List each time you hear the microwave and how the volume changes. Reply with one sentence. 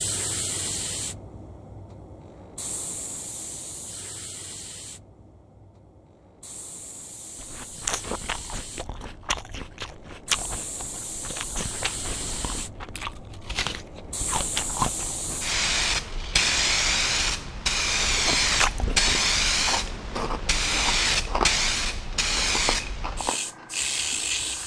You can't hear the microwave here.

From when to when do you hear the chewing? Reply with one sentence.
You can hear the chewing from 7.3 to 15.4 s and from 18.1 to 24.6 s.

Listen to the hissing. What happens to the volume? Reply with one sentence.
The loudness of the hissing goes down, then up.